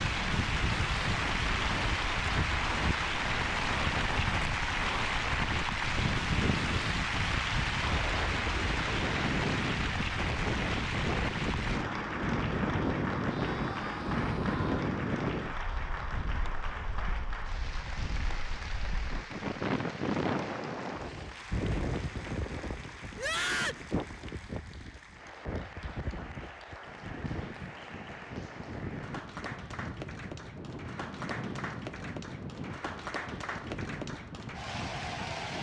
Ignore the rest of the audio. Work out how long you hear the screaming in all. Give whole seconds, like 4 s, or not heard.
2 s.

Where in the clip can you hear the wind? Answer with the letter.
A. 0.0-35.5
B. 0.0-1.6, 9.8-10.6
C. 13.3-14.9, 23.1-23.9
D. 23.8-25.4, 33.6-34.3
A.